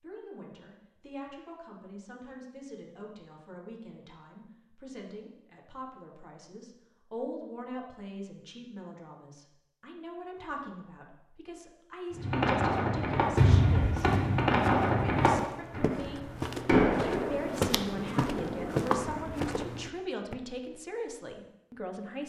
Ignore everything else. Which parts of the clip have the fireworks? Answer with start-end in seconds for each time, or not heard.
12.2-19.4.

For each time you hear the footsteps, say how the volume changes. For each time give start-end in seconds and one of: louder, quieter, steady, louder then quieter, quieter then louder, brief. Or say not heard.
13.2-20.4 louder.